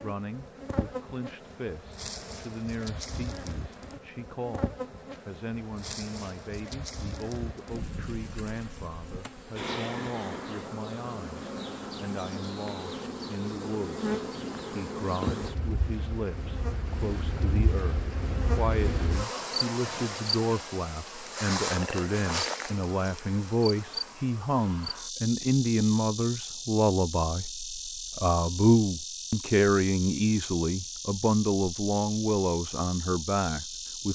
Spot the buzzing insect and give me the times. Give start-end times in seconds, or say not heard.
0.0-34.1.